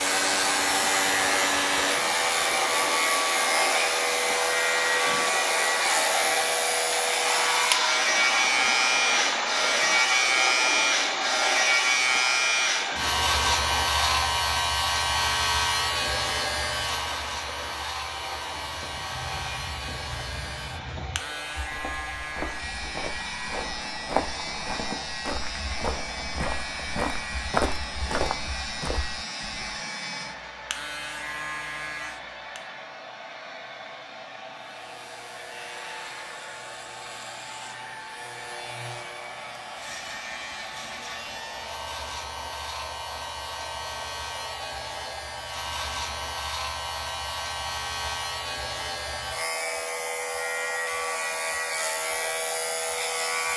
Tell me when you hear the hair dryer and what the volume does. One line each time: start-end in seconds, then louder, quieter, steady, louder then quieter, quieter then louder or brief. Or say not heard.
0.0-53.5 quieter.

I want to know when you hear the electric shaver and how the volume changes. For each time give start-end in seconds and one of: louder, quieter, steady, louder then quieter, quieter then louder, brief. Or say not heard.
0.0-32.7 quieter
34.5-53.5 louder.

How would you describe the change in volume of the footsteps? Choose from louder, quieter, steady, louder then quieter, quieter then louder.
louder.